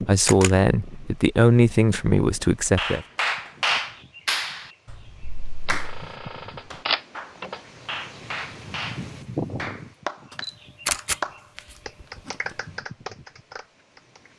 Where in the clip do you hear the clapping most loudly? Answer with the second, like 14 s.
4 s.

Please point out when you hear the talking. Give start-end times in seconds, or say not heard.
0.0-3.0.